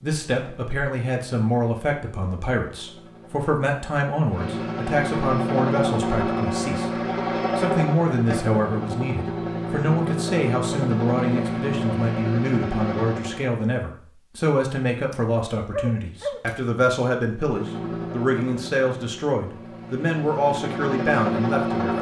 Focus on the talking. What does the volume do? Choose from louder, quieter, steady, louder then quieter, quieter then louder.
steady.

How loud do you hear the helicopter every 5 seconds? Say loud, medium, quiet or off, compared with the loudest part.
medium, loud, loud, medium, loud.